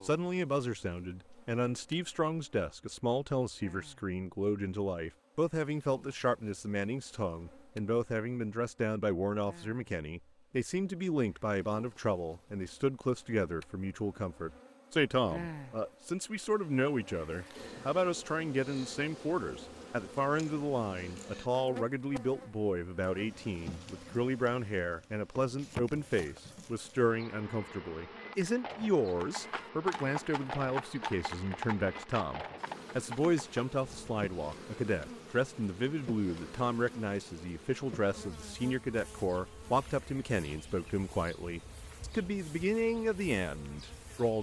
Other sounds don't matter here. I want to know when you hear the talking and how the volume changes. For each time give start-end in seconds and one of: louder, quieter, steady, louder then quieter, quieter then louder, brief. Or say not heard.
0.0-44.3 steady.